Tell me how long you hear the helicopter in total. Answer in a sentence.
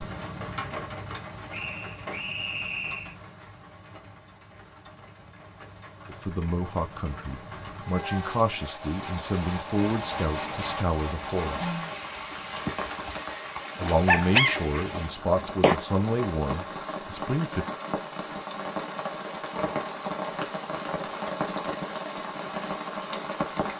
You can't hear the helicopter here.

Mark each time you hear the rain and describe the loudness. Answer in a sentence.
You can hear the rain from 0.0 to 23.7 s, getting louder.